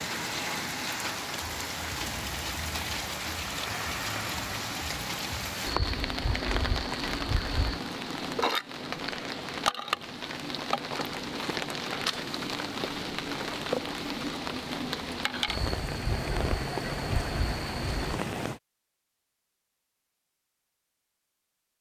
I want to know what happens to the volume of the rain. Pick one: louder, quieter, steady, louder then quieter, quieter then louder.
steady.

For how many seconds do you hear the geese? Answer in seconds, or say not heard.
5 s.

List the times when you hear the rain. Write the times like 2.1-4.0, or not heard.
0.0-18.6.